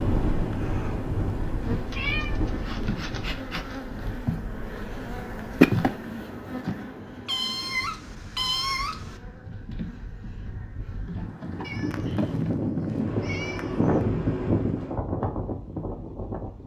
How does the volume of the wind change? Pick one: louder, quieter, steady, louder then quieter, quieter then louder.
quieter then louder.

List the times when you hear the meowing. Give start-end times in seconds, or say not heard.
1.9-3.8, 7.2-9.2, 11.6-14.0.